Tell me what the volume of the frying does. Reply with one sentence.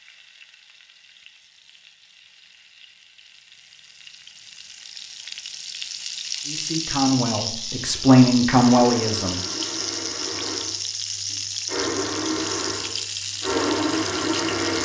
The volume of the frying goes up.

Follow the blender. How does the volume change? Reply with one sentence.
The volume of the blender goes up.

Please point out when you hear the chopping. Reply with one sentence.
You can't hear the chopping here.